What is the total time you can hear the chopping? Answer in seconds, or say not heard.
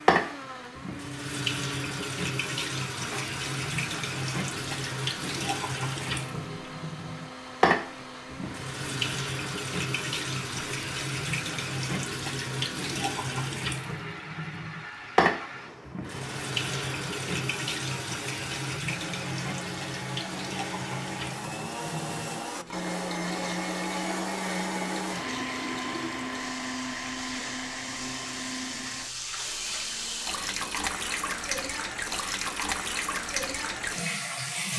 not heard.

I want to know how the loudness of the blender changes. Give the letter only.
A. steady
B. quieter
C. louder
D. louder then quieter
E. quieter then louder
D.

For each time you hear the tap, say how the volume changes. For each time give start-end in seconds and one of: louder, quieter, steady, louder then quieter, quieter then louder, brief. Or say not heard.
0.0-34.7 quieter then louder.